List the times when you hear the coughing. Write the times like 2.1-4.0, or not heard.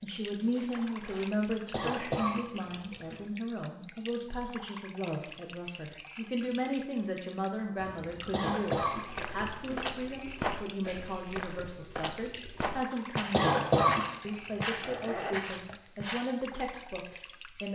1.7-3.2, 8.3-9.8, 13.3-14.1.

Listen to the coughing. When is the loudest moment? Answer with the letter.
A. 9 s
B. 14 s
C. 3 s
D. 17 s
B.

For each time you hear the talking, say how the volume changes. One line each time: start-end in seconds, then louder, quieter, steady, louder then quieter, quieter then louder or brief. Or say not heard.
0.0-17.7 steady.